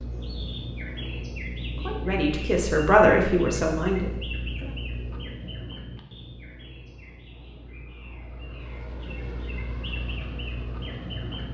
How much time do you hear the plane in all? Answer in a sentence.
You can hear the plane for 5 seconds altogether.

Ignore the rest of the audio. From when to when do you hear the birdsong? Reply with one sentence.
You can hear the birdsong from 0.0 to 11.5 s.